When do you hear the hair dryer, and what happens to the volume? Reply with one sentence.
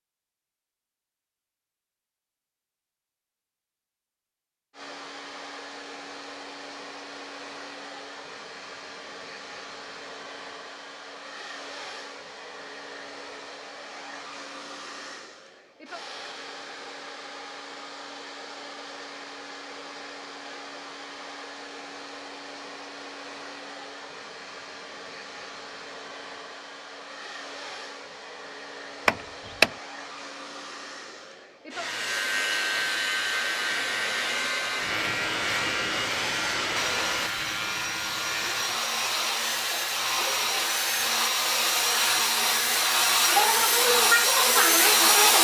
The hair dryer can be heard from 4.7 to 45.3 s, getting louder.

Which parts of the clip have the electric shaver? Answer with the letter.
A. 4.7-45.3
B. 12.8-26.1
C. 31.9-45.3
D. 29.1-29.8
C.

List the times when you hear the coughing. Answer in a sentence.
You can't hear the coughing here.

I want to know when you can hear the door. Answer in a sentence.
You can hear the door from 29.1 to 29.8 s.